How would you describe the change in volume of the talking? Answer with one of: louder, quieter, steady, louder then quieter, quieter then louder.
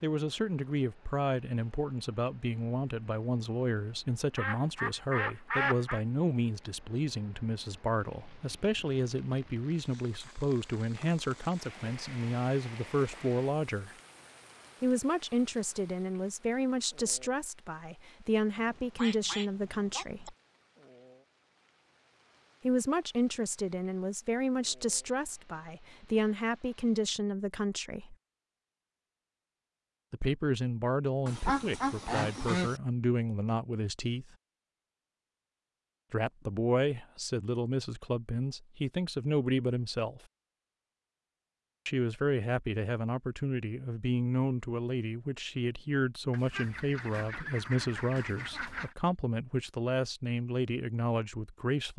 steady.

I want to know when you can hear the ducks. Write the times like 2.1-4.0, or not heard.
4.3-6.0, 18.6-20.3, 31.2-32.8, 46.3-49.0.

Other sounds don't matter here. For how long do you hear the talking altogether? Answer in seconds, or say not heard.
43 s.